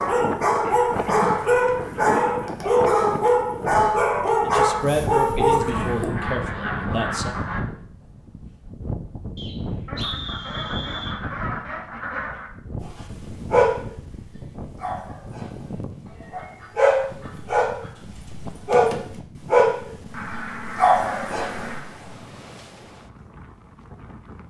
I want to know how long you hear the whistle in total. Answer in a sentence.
The whistle can be heard for 2 seconds in total.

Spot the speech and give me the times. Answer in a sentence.
The speech can be heard from 4.5 to 7.3 s.